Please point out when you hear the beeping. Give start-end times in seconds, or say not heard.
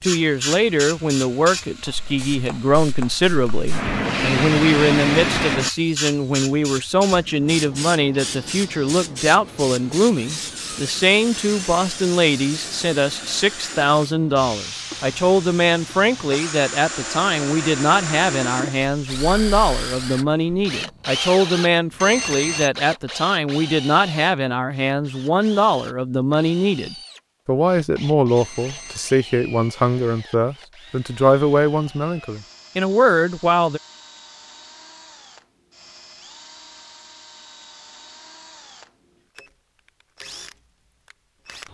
11.3-11.8, 22.0-22.7, 28.4-29.1.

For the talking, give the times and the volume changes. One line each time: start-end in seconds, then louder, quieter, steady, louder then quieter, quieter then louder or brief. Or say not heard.
0.0-33.8 steady.